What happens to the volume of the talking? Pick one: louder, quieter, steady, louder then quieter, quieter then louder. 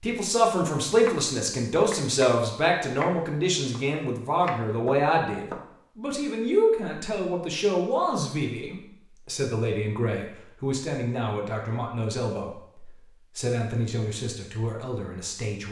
quieter.